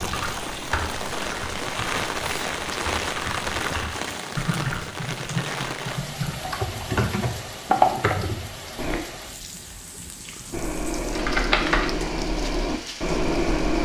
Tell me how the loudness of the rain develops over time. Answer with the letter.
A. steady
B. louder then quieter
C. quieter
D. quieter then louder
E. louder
C.